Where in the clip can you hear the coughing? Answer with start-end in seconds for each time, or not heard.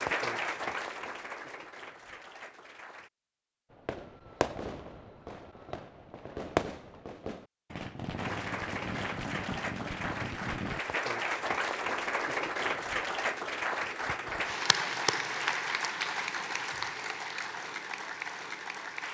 not heard.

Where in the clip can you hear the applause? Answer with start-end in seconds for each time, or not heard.
0.0-3.1, 8.2-19.0.